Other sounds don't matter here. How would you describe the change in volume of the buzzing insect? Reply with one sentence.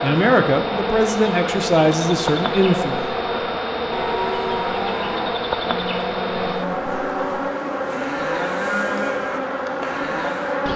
The loudness of the buzzing insect stays about the same.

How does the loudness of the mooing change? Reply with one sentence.
The volume of the mooing stays about the same.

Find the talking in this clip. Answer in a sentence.
You can hear the talking from 0.0 to 3.0 s.